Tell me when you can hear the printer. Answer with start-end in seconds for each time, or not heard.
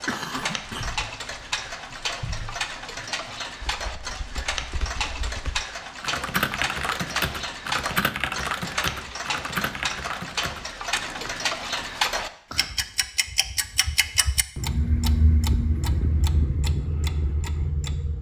not heard.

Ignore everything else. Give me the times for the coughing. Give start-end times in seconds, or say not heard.
0.1-0.9.